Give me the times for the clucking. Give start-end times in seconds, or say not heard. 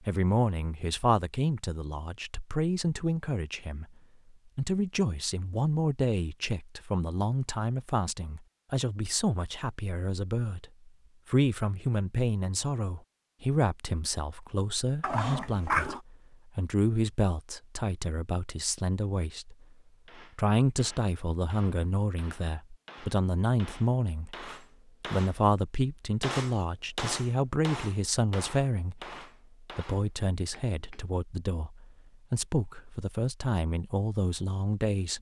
not heard.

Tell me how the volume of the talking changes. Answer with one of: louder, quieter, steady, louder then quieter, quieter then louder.
steady.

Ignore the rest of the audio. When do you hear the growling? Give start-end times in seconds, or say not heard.
15.0-16.0.